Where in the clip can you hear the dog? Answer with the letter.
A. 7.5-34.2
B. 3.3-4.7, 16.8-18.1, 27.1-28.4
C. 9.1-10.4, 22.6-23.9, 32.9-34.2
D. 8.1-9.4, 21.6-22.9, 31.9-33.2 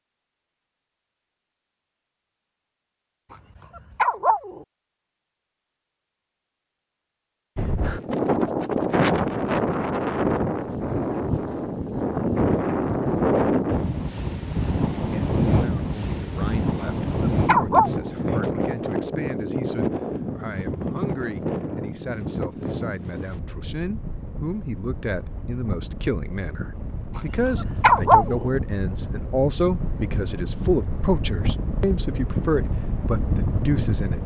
B.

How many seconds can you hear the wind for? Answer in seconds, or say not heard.
27 s.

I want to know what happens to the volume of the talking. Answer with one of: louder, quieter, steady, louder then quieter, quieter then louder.
louder.